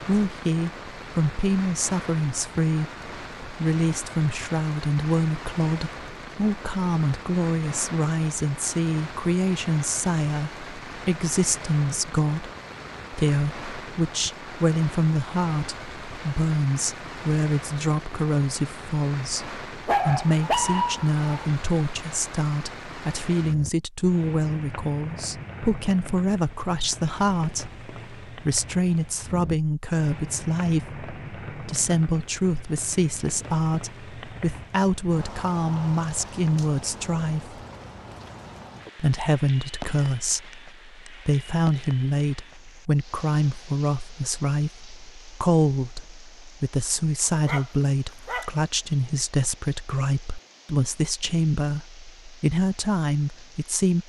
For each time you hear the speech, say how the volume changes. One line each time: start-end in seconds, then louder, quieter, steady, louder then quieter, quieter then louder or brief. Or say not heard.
0.0-12.5 steady
13.1-37.6 steady
39.0-54.0 steady.